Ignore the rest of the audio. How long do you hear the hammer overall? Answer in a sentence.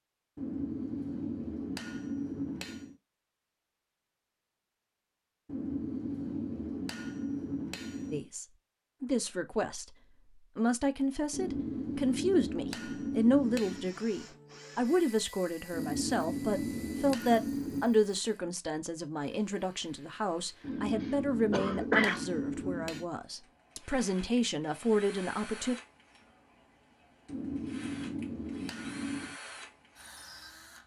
You can hear the hammer for 15 seconds altogether.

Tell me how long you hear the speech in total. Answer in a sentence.
You can hear the speech for 17 seconds altogether.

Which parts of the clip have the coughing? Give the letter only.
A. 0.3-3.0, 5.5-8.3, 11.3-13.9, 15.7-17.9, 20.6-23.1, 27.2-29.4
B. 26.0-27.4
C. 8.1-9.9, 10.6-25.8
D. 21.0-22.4
D.